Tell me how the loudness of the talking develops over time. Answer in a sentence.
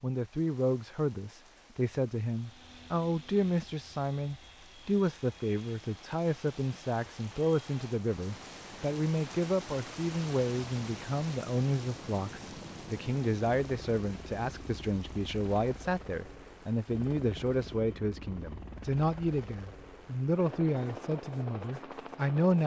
The loudness of the talking stays about the same.